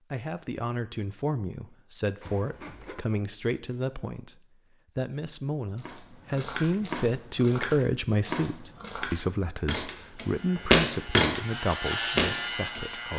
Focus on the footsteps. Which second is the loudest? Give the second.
11 s.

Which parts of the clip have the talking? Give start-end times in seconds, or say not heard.
0.1-13.1.